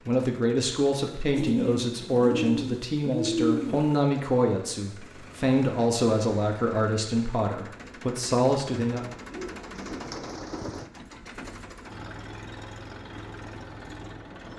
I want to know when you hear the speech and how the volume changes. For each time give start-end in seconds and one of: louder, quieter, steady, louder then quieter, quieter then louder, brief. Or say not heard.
0.1-9.2 steady.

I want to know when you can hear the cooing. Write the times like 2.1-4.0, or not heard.
1.3-4.0, 9.3-10.9.